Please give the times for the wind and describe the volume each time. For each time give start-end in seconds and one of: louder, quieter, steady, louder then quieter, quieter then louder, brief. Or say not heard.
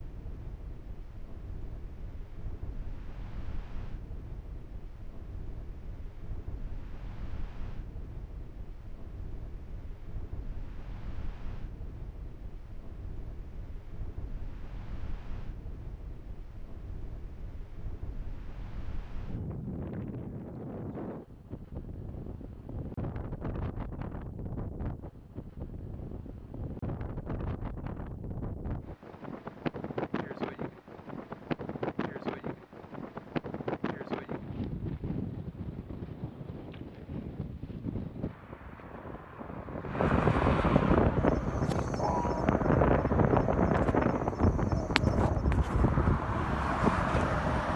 0.0-47.7 louder.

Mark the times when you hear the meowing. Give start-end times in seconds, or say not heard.
not heard.